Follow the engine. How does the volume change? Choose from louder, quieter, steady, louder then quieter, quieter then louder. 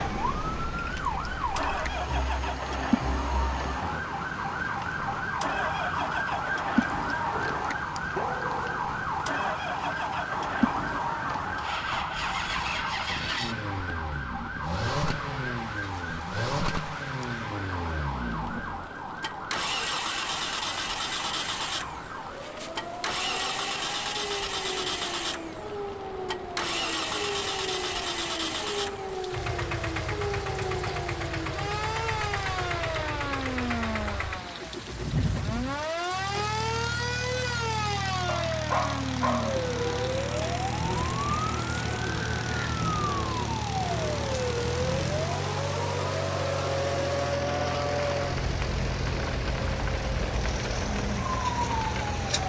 steady.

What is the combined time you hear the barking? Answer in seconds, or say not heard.
3 s.